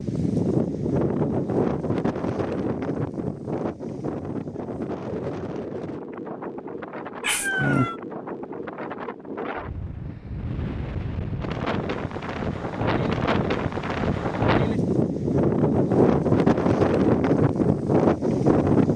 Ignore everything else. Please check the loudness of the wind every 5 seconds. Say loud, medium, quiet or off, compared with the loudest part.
medium, quiet, medium, loud.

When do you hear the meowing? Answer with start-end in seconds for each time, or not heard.
7.2-8.0.